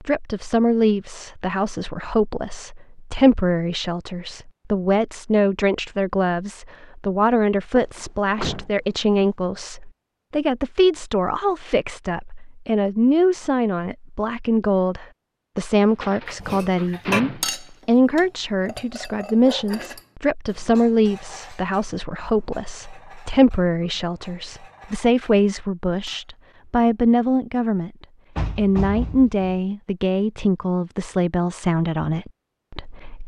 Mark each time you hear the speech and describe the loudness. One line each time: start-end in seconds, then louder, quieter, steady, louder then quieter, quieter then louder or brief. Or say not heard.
0.0-33.2 steady.